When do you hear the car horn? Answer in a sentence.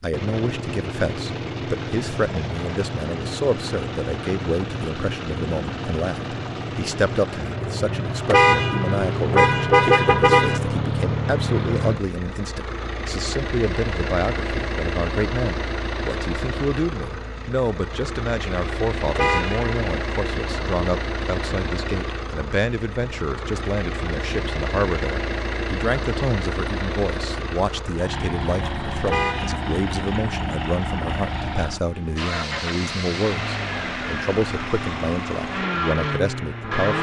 You can hear the car horn from 8.2 to 10.6 s, from 19.1 to 19.6 s and from 29.1 to 29.6 s.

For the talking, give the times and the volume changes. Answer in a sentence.
You can hear the talking from 0.0 to 36.9 s, at a steady volume.